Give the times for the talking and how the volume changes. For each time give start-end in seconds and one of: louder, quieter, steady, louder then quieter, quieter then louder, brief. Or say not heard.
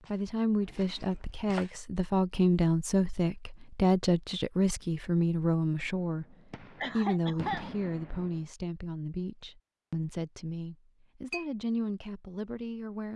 0.1-13.1 quieter.